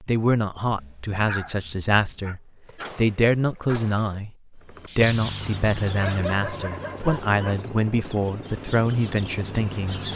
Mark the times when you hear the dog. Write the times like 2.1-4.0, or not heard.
0.7-2.4, 5.8-7.6.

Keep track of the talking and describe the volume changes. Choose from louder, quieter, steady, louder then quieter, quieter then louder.
steady.